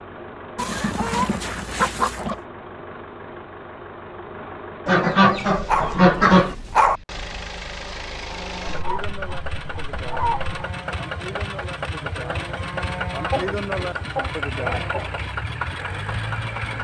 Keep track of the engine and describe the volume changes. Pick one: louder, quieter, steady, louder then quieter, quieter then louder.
louder.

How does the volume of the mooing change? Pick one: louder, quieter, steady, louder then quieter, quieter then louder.
louder.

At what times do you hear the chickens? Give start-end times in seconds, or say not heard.
0.6-2.4, 4.8-6.5, 8.7-10.6, 13.1-15.2.